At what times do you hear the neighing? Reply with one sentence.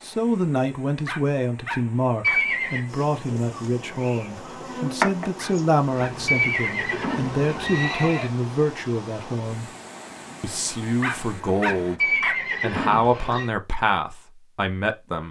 The neighing can be heard from 2.2 to 2.9 s, from 6.2 to 8.3 s and from 11.9 to 13.5 s.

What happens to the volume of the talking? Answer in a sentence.
The loudness of the talking stays about the same.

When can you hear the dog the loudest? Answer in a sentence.
The loudest moment of the dog is at 12 seconds.